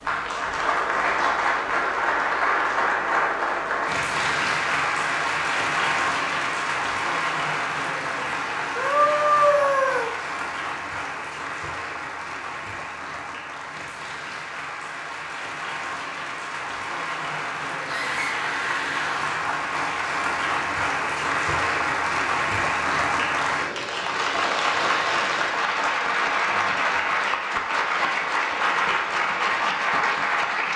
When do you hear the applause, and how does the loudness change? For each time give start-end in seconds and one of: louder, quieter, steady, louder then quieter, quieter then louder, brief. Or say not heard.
0.0-30.7 quieter then louder.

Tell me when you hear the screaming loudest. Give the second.
9 s.